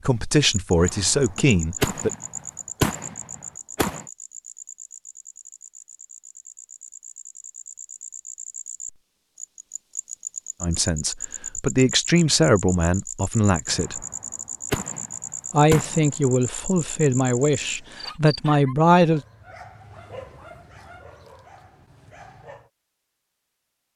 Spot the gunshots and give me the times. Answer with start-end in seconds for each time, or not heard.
0.8-4.0, 13.7-16.3.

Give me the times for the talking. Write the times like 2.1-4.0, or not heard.
0.0-2.1, 10.6-13.9, 15.5-19.2.